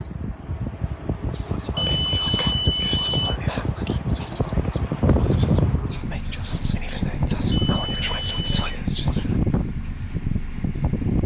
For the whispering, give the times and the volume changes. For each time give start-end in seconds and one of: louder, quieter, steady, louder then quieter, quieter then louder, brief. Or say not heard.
1.3-9.3 quieter then louder.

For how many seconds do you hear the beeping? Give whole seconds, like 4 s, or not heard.
3 s.